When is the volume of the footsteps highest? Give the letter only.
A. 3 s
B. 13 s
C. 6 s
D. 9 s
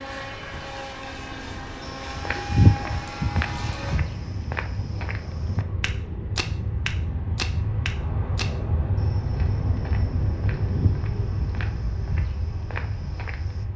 A.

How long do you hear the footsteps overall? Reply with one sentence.
You can hear the footsteps for 12 seconds altogether.